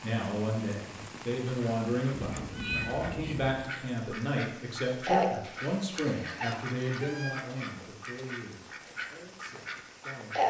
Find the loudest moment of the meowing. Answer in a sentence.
The volume of the meowing peaks at 3 seconds.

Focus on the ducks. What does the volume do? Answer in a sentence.
The volume of the ducks goes up, then down.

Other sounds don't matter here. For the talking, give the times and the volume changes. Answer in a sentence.
The talking can be heard from 0.0 to 10.4 s, getting quieter.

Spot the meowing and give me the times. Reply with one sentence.
The meowing can be heard from 2.1 to 3.6 s and from 6.3 to 7.5 s.